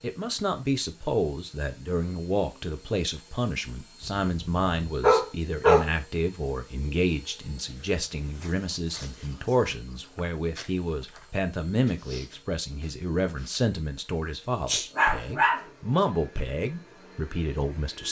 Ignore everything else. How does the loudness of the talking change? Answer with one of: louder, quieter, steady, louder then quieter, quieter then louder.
steady.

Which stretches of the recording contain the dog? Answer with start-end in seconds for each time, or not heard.
4.0-5.8, 14.7-15.6.